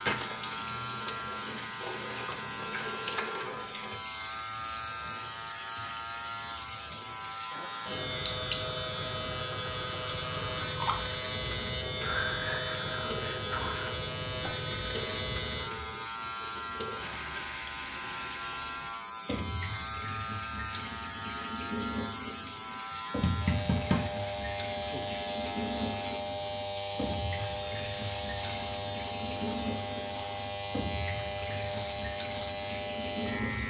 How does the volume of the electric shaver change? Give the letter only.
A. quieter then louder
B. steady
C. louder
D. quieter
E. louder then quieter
B.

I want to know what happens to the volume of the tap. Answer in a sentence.
The volume of the tap stays about the same.